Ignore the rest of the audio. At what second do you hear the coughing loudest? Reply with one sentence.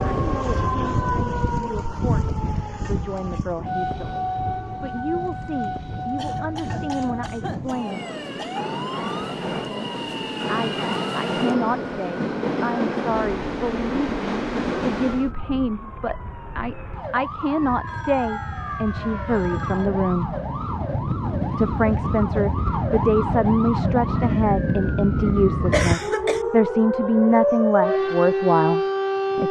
The loudest moment of the coughing is at 26 seconds.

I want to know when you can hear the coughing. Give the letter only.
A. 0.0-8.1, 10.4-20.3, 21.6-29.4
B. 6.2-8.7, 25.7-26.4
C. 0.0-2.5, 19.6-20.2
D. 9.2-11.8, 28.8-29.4
B.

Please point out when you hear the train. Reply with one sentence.
You can hear the train from 0.0 to 15.3 s.